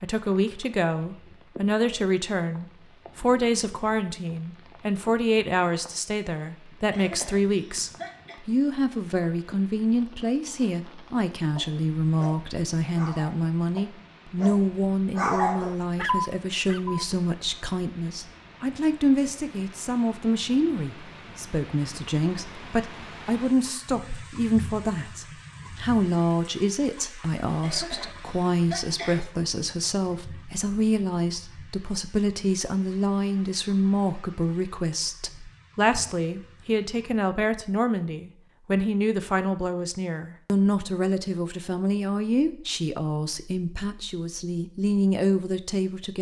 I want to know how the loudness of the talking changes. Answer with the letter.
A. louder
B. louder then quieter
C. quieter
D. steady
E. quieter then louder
D.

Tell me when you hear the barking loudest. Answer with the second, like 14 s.
15 s.